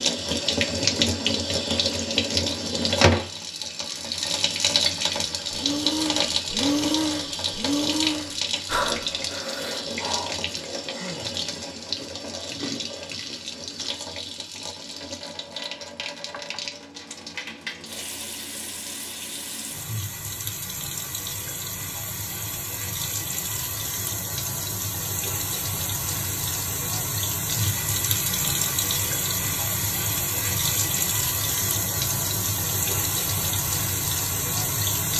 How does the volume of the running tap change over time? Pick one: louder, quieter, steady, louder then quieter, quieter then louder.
quieter then louder.